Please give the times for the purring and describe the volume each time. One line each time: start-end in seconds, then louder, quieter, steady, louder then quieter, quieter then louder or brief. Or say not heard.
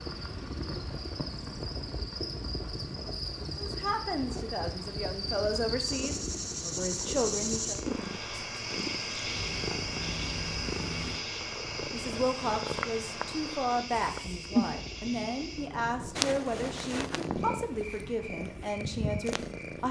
0.0-19.8 louder.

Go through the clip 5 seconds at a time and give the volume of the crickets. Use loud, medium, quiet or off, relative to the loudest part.
medium, loud, loud, medium.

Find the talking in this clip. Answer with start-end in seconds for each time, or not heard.
3.5-7.8, 11.9-19.8.